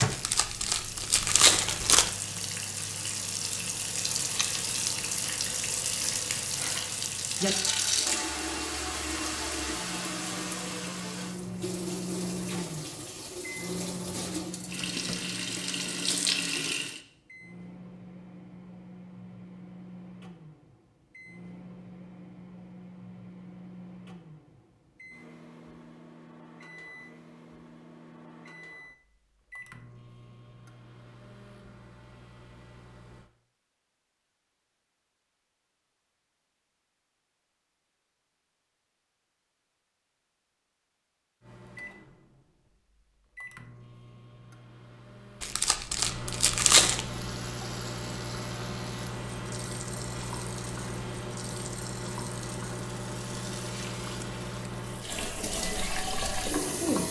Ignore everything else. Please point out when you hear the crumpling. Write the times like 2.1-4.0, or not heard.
0.1-2.1, 45.4-47.0.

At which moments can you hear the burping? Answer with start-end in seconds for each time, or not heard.
not heard.